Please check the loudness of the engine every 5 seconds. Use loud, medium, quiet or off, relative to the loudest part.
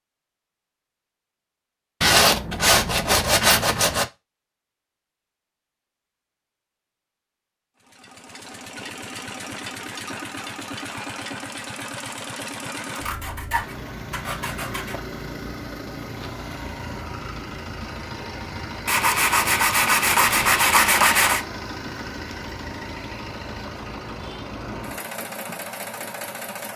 off, loud, loud, loud, loud, loud.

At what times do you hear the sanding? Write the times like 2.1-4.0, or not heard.
2.0-4.0, 12.9-14.9, 18.9-21.4.